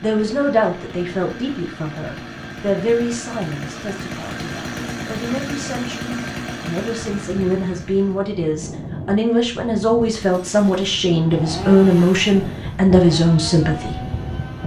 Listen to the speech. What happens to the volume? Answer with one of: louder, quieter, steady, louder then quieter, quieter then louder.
quieter then louder.